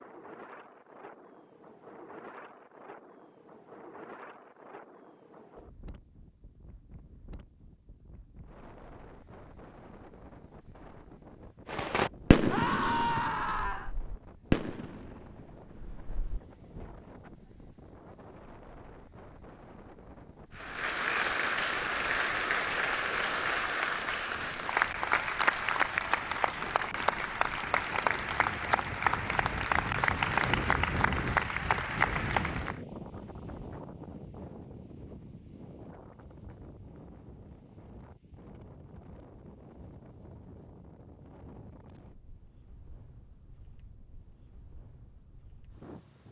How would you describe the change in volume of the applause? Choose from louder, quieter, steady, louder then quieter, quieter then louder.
steady.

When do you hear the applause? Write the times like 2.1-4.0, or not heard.
20.6-32.8.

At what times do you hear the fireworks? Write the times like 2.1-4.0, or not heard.
11.7-16.9.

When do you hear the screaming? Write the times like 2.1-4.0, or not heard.
12.5-13.9.